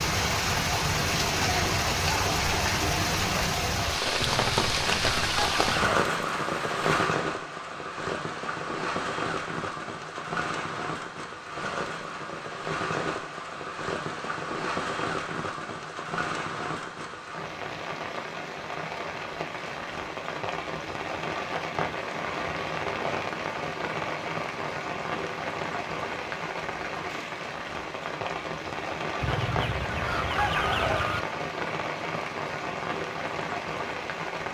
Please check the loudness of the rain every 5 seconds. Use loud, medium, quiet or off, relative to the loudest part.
loud, loud, medium, medium, medium, medium, medium.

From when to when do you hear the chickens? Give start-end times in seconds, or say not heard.
4.2-5.9, 29.2-31.2.